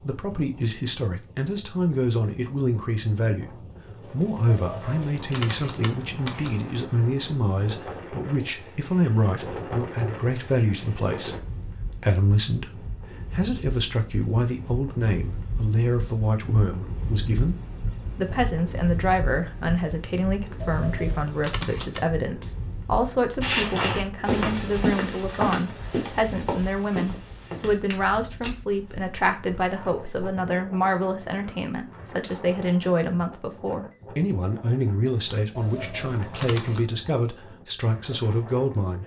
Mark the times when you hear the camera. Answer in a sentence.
You can hear the camera from 4.5 to 6.5 s, from 20.6 to 22.0 s and from 35.5 to 36.8 s.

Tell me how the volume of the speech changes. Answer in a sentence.
The volume of the speech stays about the same.